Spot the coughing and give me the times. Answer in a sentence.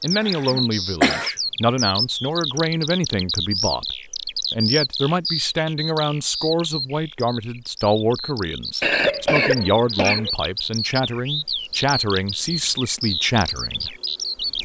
You can hear the coughing from 0.2 to 1.3 s and from 8.8 to 10.3 s.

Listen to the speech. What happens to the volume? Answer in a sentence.
The volume of the speech stays about the same.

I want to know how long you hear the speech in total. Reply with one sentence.
You can hear the speech for 14 seconds altogether.